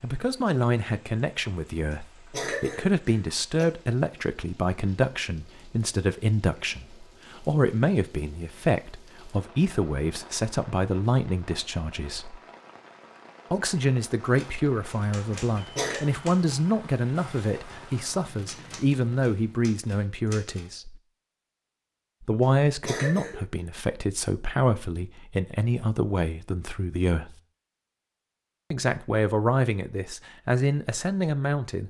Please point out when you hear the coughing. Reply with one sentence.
The coughing can be heard from 1.9 to 3.6 s, from 15.3 to 16.0 s and from 22.4 to 23.4 s.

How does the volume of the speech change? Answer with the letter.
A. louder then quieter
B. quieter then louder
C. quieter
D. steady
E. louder
D.